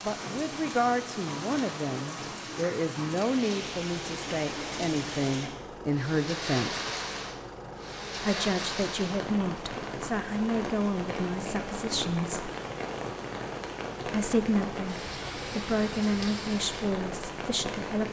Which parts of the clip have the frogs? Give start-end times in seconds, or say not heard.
not heard.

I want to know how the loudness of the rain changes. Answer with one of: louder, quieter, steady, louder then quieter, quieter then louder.
steady.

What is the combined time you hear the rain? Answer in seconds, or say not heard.
18 s.